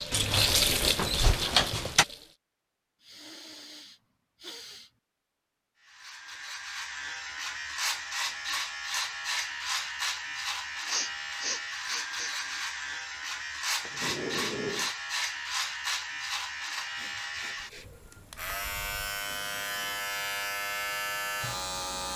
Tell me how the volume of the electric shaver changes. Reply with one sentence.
The volume of the electric shaver stays about the same.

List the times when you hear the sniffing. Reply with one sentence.
The sniffing can be heard from 3.0 to 4.9 s, from 10.8 to 12.7 s and from 16.9 to 18.2 s.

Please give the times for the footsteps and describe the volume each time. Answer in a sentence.
You can't hear the footsteps here.